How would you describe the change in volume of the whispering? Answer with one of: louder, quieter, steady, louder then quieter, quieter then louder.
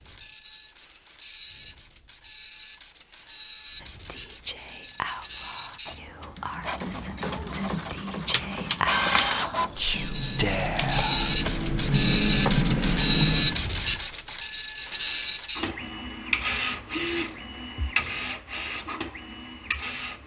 quieter then louder.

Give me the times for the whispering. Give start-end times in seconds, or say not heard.
3.8-11.3.